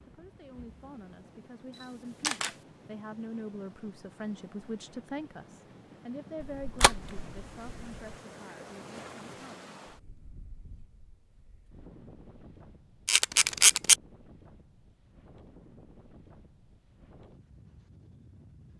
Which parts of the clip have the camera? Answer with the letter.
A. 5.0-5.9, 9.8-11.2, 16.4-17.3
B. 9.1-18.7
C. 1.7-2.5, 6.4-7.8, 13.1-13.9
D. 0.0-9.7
C.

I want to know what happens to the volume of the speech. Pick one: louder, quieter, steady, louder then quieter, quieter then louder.
louder then quieter.